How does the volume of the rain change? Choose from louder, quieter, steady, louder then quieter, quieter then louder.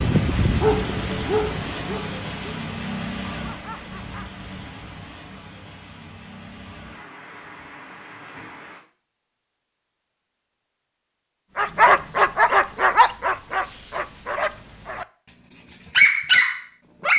quieter.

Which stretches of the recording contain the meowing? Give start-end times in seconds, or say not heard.
not heard.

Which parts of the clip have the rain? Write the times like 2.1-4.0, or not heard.
0.0-8.8.